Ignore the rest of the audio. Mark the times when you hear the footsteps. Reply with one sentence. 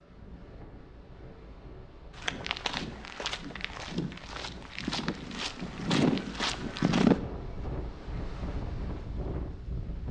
The footsteps can be heard from 2.1 to 7.2 s.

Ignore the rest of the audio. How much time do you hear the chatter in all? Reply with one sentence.
The chatter can't be heard in this clip.